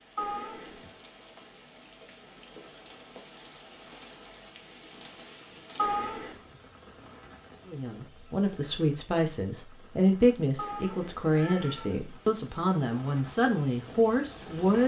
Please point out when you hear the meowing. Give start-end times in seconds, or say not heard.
0.1-0.8, 5.8-6.4, 10.6-11.9.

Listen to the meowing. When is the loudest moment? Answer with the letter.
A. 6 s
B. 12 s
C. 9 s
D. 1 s
A.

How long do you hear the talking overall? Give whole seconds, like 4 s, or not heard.
7 s.